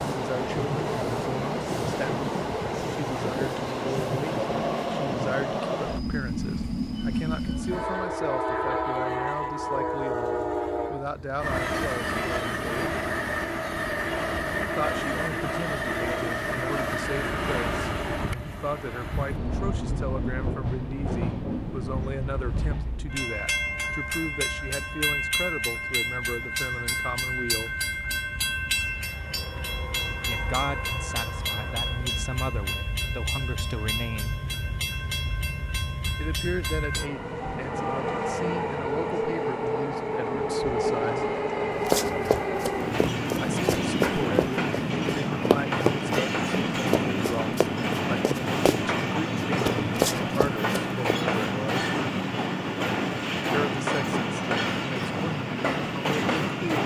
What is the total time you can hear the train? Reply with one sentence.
The train can be heard for 57 seconds in total.